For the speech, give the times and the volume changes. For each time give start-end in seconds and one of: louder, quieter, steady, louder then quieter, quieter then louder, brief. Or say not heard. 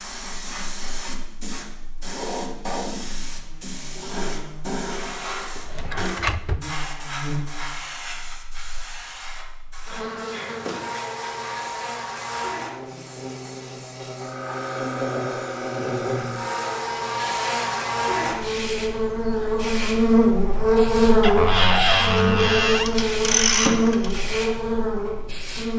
not heard.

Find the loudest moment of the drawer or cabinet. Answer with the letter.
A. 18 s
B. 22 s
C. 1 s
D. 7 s
B.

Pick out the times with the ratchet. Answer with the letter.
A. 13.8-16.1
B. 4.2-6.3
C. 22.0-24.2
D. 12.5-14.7
C.